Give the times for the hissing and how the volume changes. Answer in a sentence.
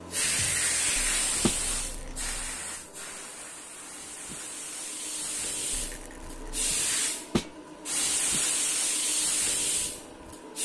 The hissing can be heard from 0.0 to 10.5 s, getting quieter then louder.